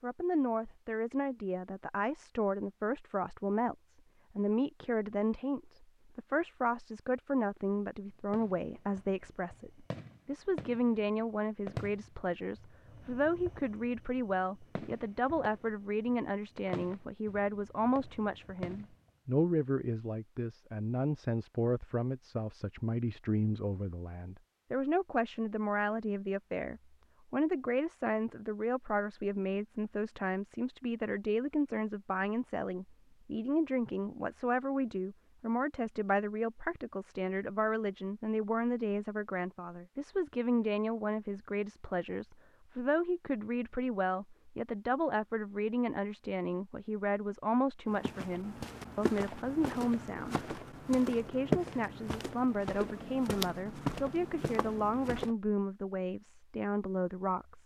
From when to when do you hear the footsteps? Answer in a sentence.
You can hear the footsteps from 47.9 to 55.4 s.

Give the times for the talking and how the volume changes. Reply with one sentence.
You can hear the talking from 0.0 to 57.6 s, at a steady volume.